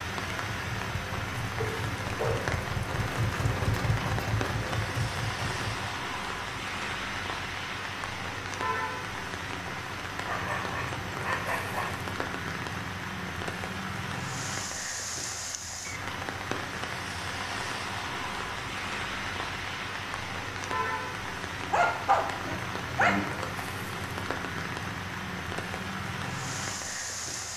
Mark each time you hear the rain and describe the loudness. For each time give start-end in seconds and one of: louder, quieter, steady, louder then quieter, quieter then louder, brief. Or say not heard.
0.0-27.5 steady.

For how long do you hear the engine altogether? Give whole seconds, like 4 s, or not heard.
6 s.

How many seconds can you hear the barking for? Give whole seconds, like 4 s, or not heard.
4 s.